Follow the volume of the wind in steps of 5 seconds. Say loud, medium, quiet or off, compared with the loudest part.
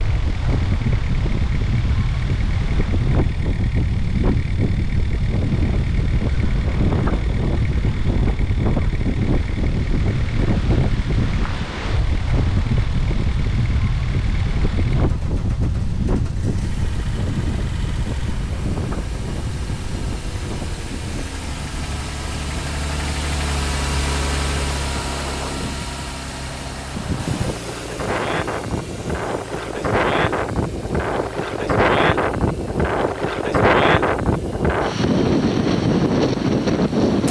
medium, medium, medium, medium, quiet, medium, loud, loud.